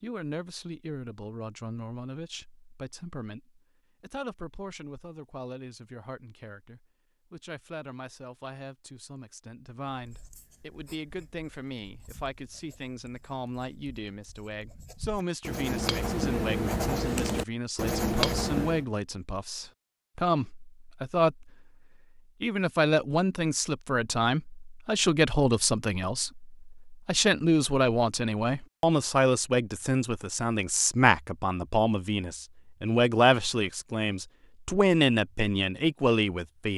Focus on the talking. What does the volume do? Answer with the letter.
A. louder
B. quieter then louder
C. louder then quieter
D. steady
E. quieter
A.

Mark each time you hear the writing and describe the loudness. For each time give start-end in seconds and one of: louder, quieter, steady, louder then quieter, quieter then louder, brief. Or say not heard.
9.9-18.9 louder.